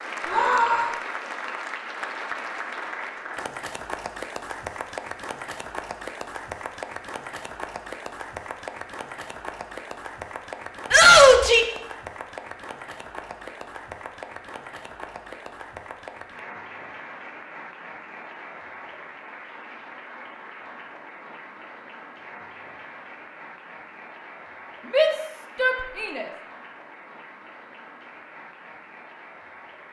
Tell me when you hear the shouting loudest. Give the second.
11 s.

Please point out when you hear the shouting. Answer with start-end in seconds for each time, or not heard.
0.2-0.9, 10.9-11.7, 24.9-26.2.